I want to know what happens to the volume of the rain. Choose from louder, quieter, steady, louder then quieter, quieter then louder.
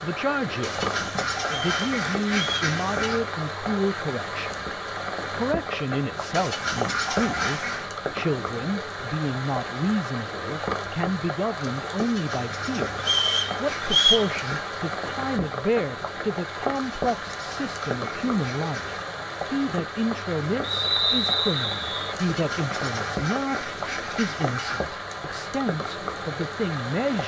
steady.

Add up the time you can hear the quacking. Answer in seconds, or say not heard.
12 s.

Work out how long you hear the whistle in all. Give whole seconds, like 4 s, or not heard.
4 s.